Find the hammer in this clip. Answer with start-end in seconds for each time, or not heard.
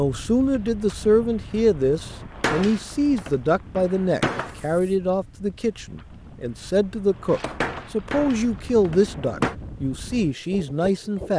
2.4-4.9, 7.2-9.6.